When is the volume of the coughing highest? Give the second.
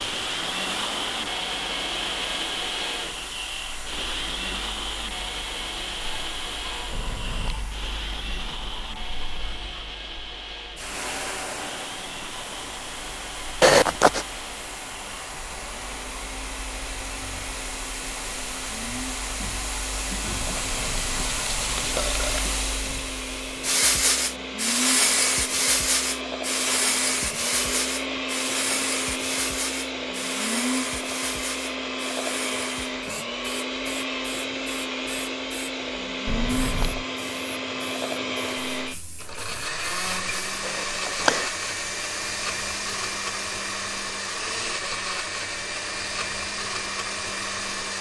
14 s.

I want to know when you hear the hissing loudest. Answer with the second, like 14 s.
25 s.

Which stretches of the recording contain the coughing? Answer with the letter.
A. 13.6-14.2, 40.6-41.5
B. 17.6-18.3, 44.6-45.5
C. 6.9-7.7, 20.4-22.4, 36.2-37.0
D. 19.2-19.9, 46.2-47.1
A.